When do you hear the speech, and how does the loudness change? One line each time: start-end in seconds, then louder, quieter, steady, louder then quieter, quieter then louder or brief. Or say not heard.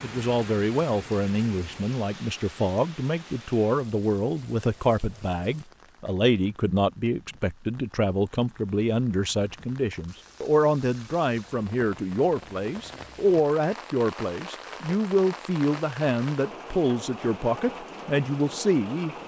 0.0-19.1 steady.